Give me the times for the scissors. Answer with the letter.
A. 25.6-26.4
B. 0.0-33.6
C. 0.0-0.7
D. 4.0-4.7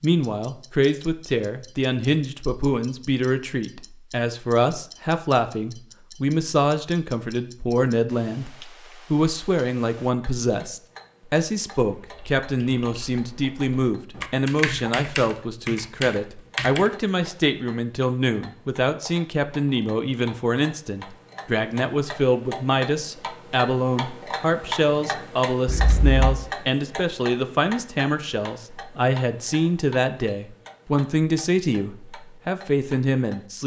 A.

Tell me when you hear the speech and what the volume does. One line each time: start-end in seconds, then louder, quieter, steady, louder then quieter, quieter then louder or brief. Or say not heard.
0.0-33.6 steady.